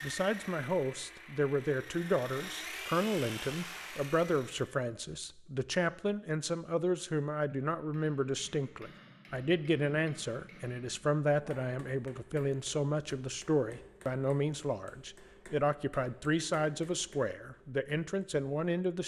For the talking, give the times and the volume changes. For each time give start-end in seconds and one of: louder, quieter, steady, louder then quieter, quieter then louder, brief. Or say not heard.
0.0-19.0 steady.